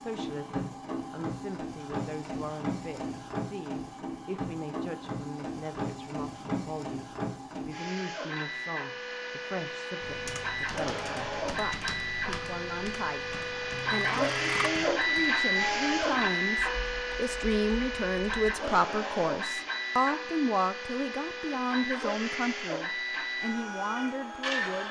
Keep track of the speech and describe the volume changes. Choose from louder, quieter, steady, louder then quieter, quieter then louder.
louder.